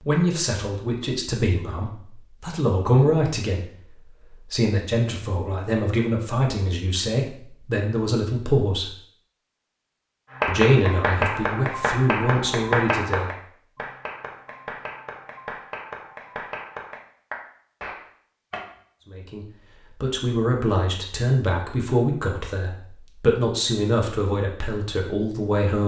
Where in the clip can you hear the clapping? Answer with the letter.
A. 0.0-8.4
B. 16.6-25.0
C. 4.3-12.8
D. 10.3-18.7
D.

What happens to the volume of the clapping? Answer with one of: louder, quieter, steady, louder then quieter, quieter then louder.
quieter.